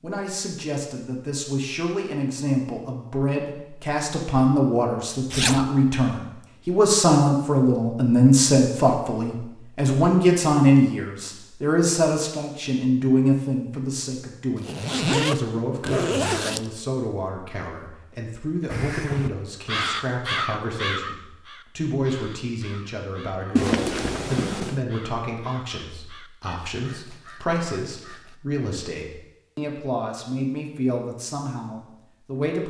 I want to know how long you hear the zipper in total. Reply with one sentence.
The zipper can be heard for 4 seconds in total.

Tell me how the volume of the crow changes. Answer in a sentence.
The volume of the crow goes down.